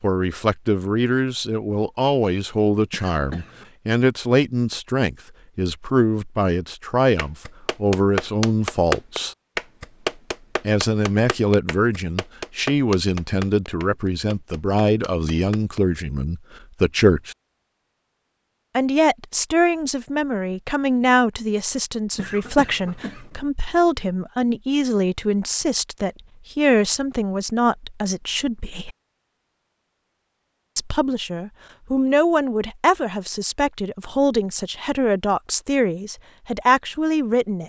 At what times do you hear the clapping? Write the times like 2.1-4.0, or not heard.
7.2-15.8.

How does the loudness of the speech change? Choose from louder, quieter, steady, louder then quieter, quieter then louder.
steady.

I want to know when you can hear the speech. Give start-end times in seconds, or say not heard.
0.0-9.3, 10.6-17.4, 18.8-28.9, 30.8-37.6.